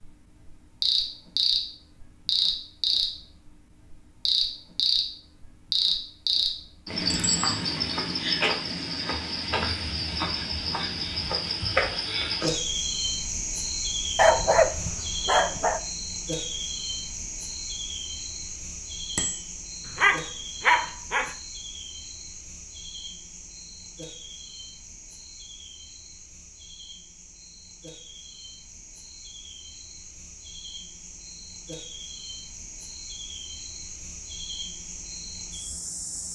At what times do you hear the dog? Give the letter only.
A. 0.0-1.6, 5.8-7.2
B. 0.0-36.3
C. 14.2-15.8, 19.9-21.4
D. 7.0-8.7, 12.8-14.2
C.